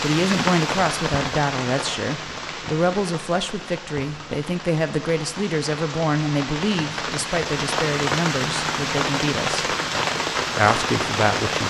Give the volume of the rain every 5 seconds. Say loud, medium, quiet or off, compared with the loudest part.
medium, loud, loud.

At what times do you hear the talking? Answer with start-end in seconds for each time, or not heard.
0.0-9.8, 10.6-11.6.